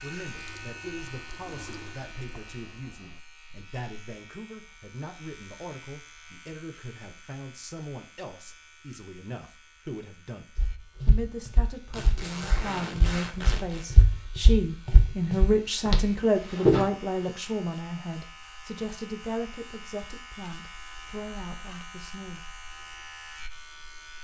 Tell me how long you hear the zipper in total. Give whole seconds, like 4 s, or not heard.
2 s.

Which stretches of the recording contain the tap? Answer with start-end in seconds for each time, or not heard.
0.0-3.2.